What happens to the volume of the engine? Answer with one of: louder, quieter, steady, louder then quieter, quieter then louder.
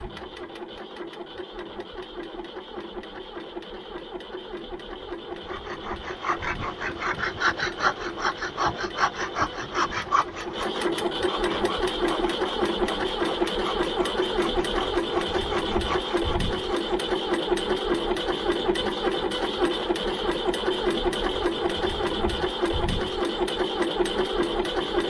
louder.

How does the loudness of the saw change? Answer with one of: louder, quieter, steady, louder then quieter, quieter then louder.
quieter.